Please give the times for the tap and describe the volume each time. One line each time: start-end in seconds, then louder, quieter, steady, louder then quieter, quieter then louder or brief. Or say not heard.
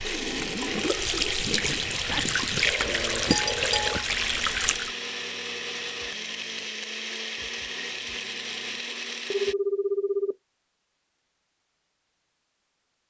0.0-5.0 steady.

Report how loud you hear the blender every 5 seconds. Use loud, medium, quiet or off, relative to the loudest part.
loud, loud, off.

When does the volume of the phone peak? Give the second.
10 s.